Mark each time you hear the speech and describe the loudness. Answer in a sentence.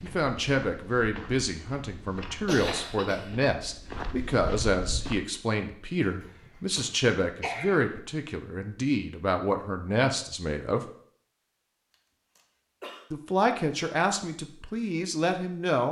The speech can be heard from 0.0 to 10.8 s, at a steady volume; and briefly from 13.1 to 15.8 s.